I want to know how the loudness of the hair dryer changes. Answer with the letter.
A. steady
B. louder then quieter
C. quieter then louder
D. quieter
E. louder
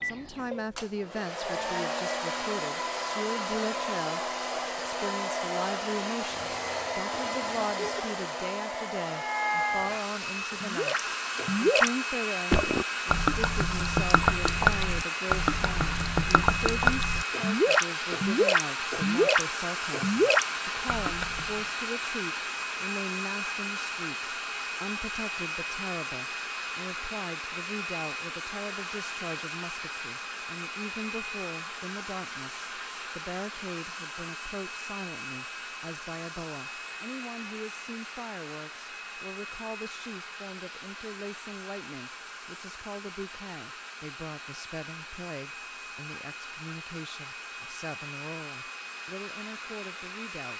D.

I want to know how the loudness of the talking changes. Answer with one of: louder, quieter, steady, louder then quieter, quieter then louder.
quieter.